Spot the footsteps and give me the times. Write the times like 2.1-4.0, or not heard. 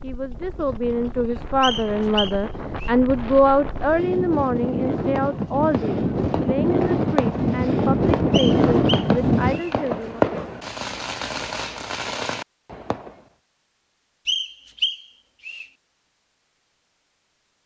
not heard.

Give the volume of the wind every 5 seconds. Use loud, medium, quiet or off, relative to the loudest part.
medium, loud, off, off.